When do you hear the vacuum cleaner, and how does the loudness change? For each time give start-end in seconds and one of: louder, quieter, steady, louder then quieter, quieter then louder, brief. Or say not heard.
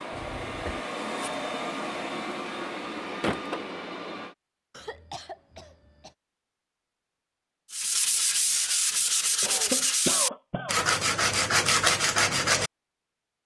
0.0-4.3 steady.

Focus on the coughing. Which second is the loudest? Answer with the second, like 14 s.
10 s.